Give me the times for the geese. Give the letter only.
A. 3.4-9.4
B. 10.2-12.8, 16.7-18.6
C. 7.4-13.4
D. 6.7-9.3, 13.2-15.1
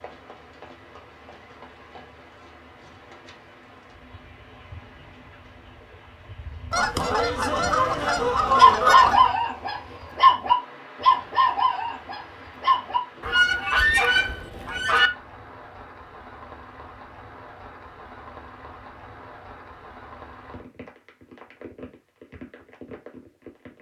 D.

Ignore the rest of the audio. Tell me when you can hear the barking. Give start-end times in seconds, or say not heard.
7.4-13.4.